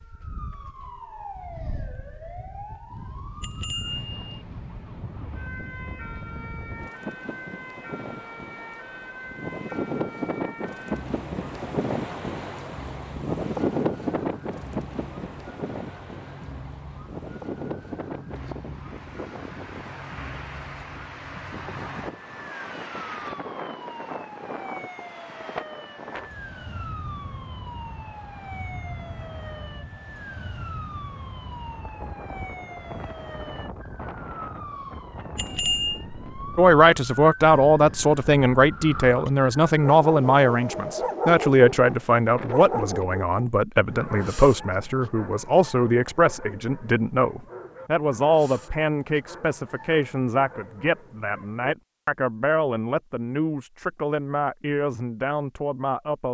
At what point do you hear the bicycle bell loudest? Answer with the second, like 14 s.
36 s.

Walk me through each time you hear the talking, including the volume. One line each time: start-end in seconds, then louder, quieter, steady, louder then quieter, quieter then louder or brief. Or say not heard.
36.5-56.3 quieter.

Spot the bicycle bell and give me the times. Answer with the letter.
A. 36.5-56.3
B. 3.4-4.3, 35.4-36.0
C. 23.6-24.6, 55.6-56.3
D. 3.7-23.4
B.